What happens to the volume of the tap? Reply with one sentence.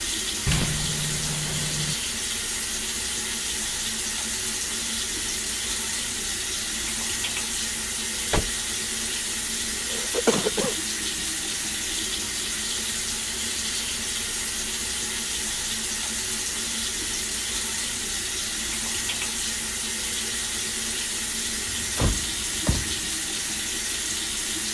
The loudness of the tap stays about the same.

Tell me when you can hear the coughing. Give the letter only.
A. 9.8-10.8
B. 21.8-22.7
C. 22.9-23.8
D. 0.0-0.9
A.